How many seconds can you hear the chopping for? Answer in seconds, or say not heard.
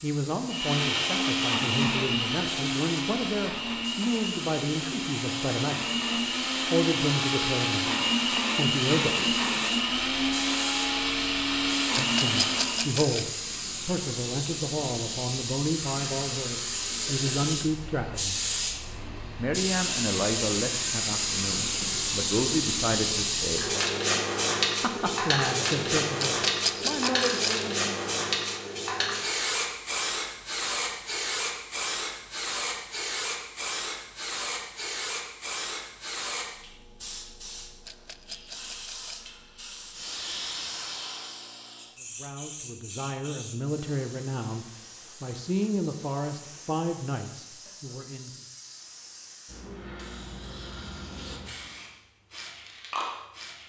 not heard.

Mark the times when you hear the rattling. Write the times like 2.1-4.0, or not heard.
11.9-13.2, 26.2-27.6, 37.9-39.3.